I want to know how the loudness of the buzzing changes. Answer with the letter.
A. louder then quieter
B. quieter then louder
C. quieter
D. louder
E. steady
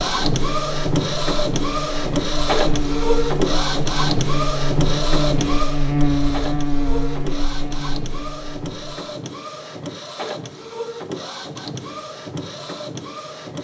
A.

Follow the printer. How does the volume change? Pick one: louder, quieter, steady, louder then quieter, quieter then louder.
quieter.